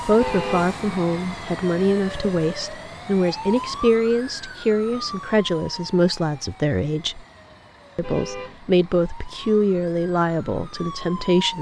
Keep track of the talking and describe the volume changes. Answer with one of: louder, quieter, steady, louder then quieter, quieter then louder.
steady.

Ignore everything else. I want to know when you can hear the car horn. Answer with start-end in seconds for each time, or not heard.
0.1-0.8, 8.0-8.6.